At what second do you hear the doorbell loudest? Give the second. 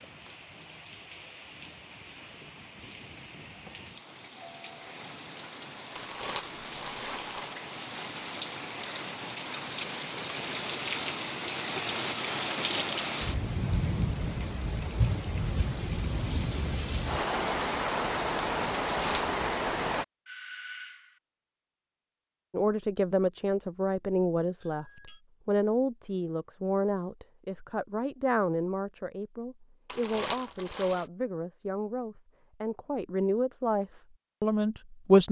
21 s.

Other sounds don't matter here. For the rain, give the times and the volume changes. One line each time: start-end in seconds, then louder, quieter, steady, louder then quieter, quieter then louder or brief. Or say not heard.
0.0-20.1 louder.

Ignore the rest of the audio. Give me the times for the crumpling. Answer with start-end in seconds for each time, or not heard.
6.0-7.5, 18.9-19.3, 29.9-31.1.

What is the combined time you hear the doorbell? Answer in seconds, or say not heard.
2 s.